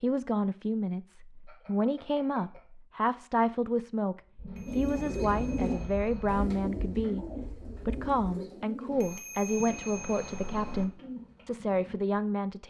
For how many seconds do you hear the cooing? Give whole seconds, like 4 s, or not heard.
7 s.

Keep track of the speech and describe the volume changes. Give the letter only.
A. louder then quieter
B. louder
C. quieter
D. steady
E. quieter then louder
D.